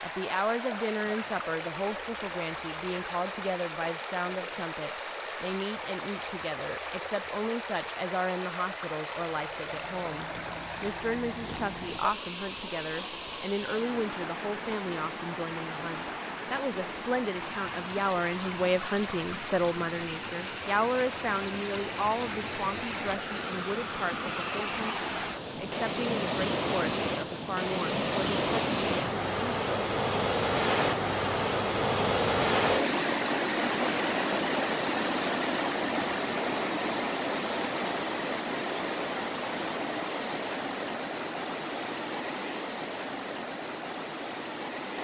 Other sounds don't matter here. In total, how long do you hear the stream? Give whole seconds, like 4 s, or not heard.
45 s.